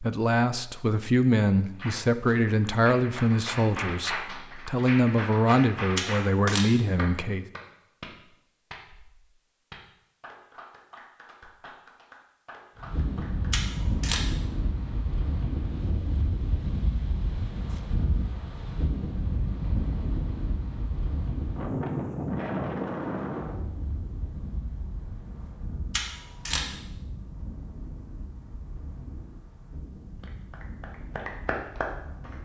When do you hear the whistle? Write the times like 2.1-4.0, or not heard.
not heard.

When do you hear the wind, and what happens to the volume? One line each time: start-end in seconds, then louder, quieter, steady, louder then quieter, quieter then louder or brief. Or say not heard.
12.8-32.4 quieter.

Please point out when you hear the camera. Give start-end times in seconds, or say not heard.
6.0-6.7, 13.5-14.2, 25.9-26.7.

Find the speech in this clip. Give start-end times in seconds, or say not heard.
0.0-7.5.